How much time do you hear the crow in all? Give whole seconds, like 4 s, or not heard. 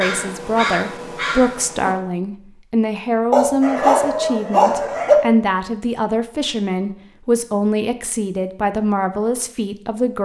2 s.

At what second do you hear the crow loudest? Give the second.
1 s.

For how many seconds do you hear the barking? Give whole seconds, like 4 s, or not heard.
2 s.